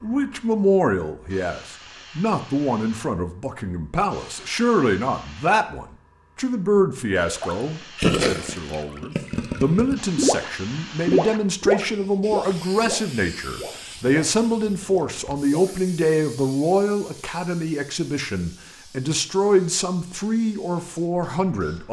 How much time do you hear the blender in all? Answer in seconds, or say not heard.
not heard.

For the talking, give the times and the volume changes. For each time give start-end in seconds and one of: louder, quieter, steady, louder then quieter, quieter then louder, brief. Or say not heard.
0.0-21.8 steady.